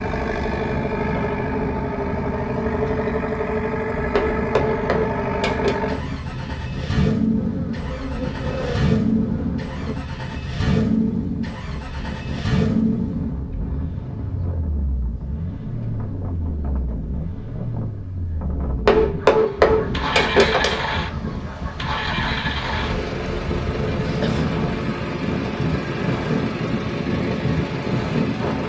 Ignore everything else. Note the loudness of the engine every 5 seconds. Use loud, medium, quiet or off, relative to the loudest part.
loud, loud, loud, medium, loud, medium.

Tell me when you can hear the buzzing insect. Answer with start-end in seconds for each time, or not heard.
7.3-9.9.